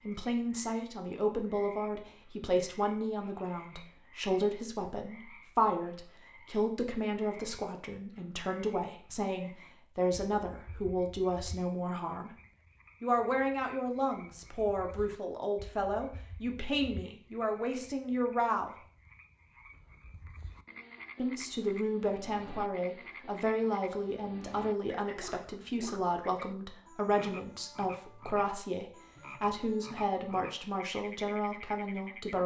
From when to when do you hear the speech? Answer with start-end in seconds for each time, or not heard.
0.0-12.3, 13.0-18.8, 21.1-32.4.